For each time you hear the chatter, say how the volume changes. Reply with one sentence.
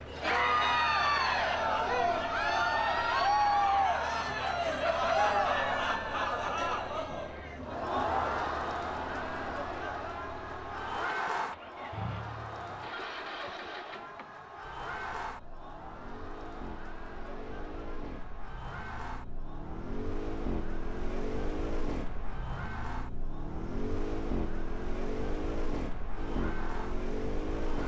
The chatter can be heard from 0.1 to 27.8 s, getting quieter.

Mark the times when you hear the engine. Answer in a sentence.
The engine can be heard from 0.0 to 27.8 s.